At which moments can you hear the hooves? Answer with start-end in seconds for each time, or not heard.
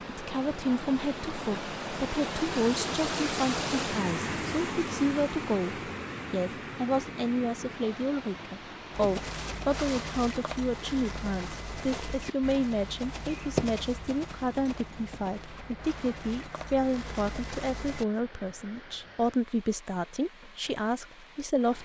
8.9-18.1.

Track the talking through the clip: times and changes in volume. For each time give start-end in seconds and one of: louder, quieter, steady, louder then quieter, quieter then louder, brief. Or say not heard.
0.1-21.8 steady.